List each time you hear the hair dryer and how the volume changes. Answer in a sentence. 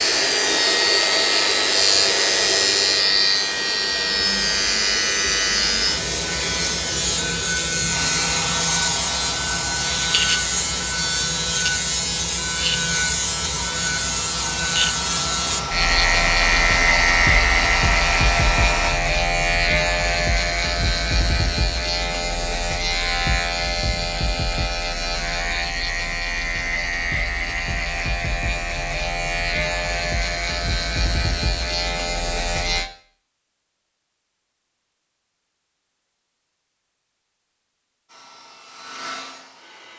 The hair dryer can be heard from 0.0 to 18.9 s, getting quieter then louder; and briefly from 38.0 to 39.9 s.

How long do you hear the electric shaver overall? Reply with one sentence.
The electric shaver can be heard for 33 seconds in total.